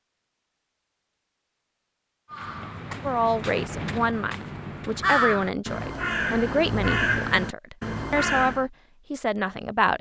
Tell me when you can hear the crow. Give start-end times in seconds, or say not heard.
2.3-8.7.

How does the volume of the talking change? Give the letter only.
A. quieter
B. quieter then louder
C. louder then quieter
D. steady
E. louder
D.